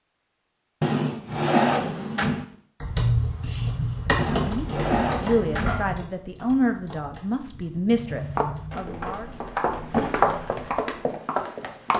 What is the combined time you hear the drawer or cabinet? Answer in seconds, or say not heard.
5 s.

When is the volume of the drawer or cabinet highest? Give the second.
2 s.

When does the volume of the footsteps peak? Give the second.
10 s.